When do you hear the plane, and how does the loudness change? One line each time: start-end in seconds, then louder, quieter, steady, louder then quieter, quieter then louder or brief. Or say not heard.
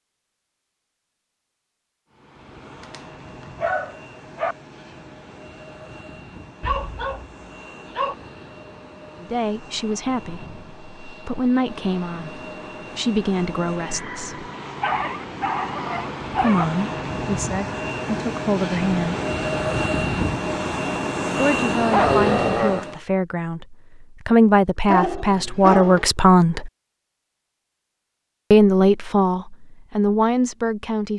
2.1-23.0 louder.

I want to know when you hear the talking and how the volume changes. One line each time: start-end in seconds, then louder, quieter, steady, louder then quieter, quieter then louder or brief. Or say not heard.
9.2-14.4 quieter then louder
16.4-19.2 brief
21.4-26.7 louder
28.5-31.1 brief.